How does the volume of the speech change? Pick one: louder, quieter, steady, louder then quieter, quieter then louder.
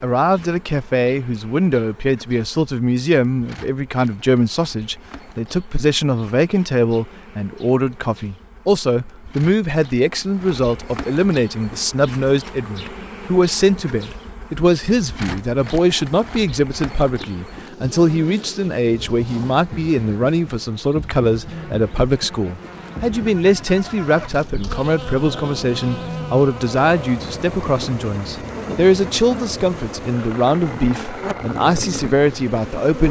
steady.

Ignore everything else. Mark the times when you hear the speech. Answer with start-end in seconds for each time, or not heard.
0.0-33.0.